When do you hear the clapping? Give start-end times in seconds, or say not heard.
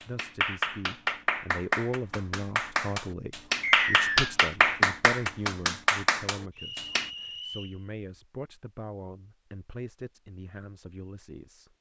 0.0-7.1.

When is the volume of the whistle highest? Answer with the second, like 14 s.
4 s.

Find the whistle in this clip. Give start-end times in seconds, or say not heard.
3.6-4.2, 6.5-7.8.